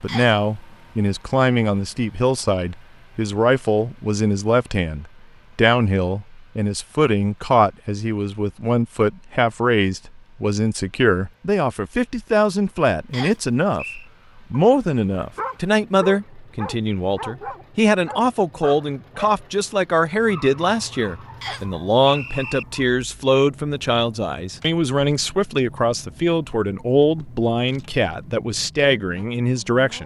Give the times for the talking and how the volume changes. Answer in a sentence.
You can hear the talking from 0.0 to 30.0 s, at a steady volume.